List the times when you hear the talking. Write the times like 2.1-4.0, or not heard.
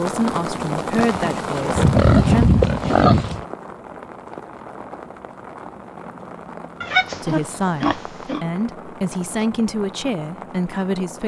0.0-2.5, 7.2-11.2.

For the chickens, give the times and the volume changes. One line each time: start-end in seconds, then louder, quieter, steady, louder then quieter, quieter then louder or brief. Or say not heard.
not heard.